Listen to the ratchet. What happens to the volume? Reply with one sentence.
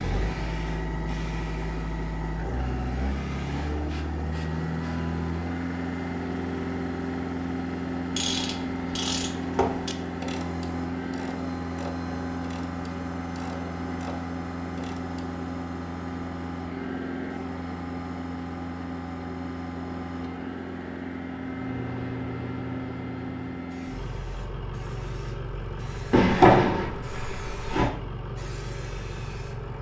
The loudness of the ratchet goes down.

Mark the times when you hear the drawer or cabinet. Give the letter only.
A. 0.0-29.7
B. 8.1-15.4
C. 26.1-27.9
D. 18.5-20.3
C.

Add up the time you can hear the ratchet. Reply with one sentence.
The ratchet can be heard for 7 seconds in total.